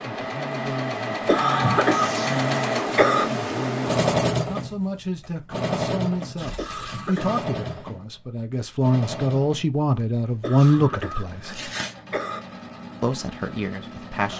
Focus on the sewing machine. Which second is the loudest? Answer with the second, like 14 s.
4 s.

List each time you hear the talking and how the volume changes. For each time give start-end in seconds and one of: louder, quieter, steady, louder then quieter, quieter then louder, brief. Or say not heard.
0.2-11.7 louder
13.0-14.3 brief.